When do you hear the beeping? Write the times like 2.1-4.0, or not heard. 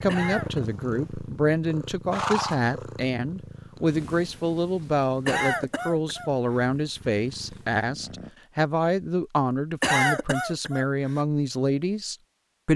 not heard.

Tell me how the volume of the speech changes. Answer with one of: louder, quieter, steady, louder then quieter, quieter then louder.
steady.